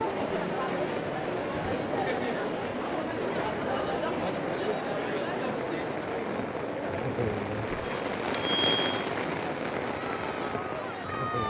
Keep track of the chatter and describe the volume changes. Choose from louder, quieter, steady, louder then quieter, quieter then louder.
quieter.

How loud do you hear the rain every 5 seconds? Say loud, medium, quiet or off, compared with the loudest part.
medium, loud, loud.